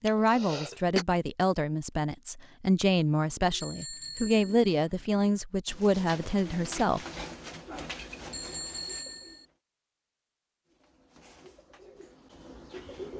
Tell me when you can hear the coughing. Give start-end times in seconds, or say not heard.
0.1-1.1.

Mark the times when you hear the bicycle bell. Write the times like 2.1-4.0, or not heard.
3.6-4.5, 8.3-9.4.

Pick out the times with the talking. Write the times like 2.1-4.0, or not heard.
0.0-7.0.